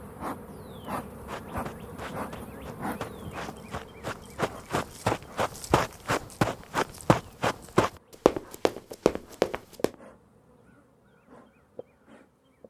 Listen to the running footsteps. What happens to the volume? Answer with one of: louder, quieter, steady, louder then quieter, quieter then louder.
louder.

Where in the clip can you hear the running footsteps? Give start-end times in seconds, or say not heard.
0.9-9.9.